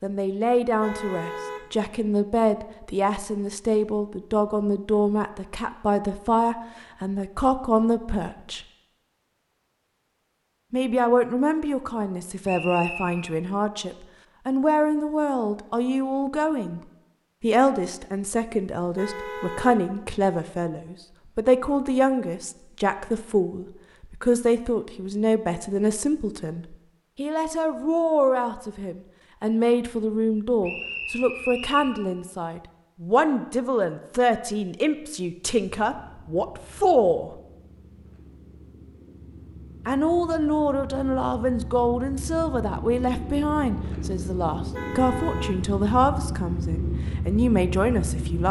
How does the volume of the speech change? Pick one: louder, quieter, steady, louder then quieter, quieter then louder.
steady.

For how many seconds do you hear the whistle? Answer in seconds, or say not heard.
2 s.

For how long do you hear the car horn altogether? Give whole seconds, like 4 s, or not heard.
3 s.